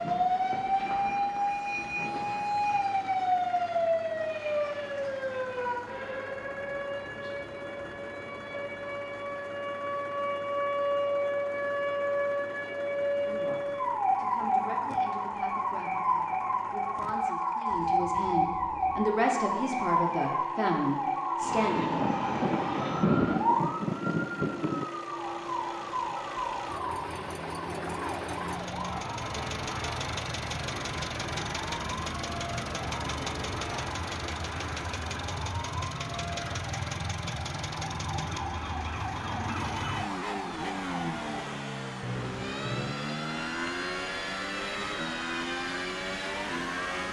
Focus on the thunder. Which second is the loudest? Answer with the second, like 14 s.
23 s.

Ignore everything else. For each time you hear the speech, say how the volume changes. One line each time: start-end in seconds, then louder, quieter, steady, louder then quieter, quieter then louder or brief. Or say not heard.
13.2-22.0 louder.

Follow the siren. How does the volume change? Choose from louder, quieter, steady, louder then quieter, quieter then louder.
quieter.